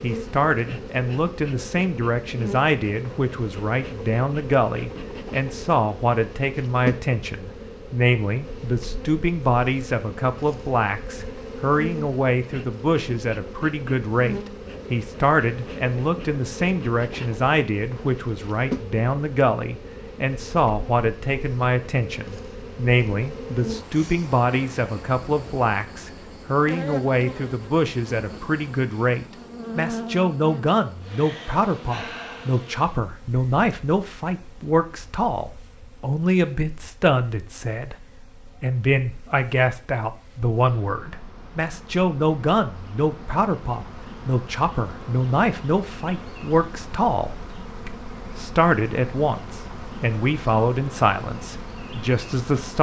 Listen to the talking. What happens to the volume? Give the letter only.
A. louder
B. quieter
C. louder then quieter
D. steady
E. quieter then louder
D.